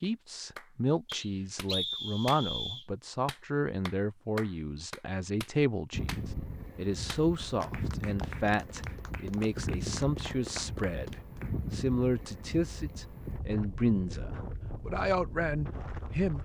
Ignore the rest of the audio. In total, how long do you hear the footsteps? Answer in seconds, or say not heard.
not heard.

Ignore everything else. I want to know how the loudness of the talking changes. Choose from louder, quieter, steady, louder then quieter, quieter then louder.
steady.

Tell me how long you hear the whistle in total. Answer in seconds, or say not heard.
2 s.